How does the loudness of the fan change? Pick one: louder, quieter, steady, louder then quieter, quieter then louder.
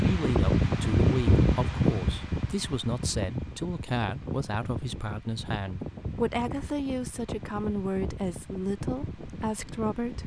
quieter.